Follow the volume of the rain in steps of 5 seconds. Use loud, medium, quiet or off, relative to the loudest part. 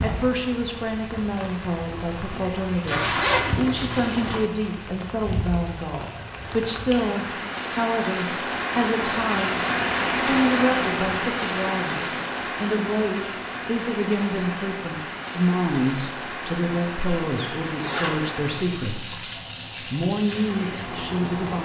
medium, loud, loud, medium, medium.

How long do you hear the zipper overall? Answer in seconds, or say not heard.
2 s.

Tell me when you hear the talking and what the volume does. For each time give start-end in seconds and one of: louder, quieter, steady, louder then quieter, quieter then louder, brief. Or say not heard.
0.0-21.6 steady.